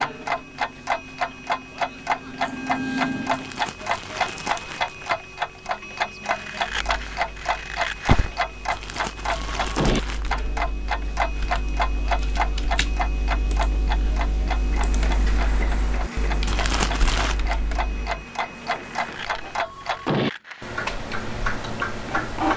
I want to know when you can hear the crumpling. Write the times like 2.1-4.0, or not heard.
3.3-5.2, 8.7-10.5, 16.4-17.4.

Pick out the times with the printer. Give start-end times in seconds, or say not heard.
0.0-3.8, 14.5-19.6, 20.9-22.5.